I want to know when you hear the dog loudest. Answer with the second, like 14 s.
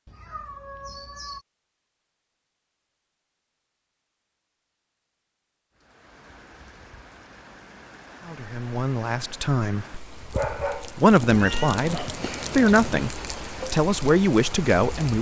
11 s.